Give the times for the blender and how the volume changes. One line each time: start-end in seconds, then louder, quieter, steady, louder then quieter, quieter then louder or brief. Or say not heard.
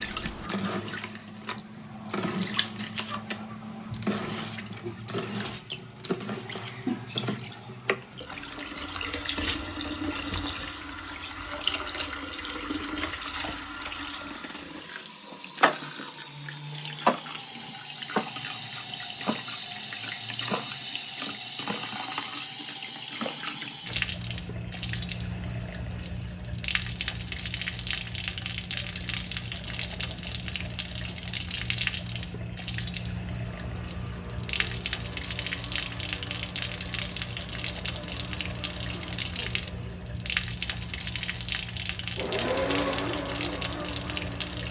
33.4-44.6 quieter then louder.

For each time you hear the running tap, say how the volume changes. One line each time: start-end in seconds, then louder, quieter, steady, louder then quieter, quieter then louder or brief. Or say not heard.
0.0-44.6 steady.